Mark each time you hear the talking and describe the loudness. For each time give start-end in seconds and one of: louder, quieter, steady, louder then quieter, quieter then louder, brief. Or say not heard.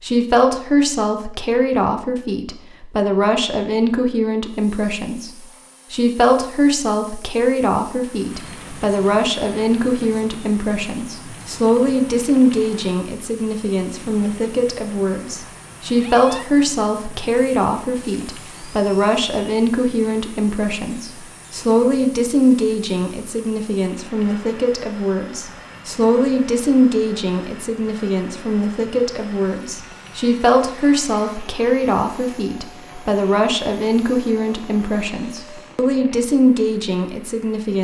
0.0-37.8 steady.